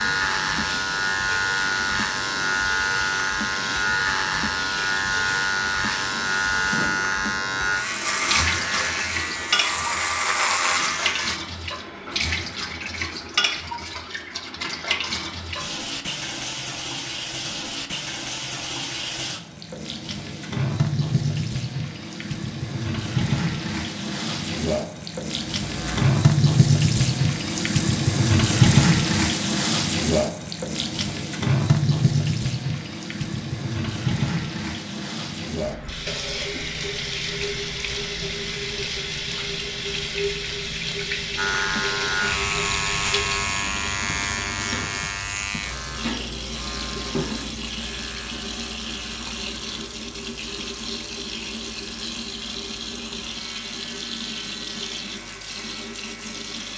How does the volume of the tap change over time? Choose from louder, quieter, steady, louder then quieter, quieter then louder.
louder then quieter.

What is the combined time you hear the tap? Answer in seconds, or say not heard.
57 s.